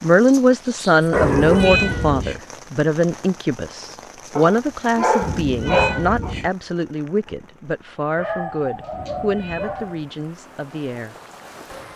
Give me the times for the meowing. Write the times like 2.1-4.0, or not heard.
1.1-2.4, 5.2-6.5, 8.9-9.8.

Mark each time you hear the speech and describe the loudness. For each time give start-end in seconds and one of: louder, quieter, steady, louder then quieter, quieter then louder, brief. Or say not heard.
0.0-11.2 quieter.